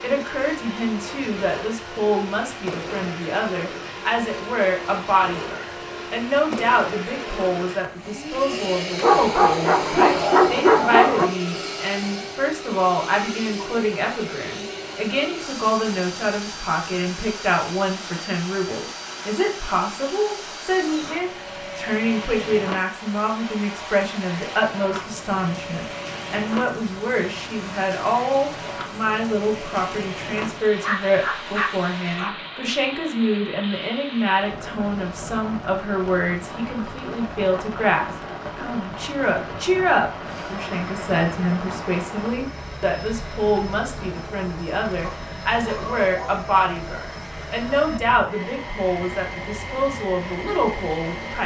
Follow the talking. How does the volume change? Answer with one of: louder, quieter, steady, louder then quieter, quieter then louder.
steady.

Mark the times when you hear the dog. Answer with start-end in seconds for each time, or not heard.
9.0-11.3, 30.8-32.4, 45.0-46.5.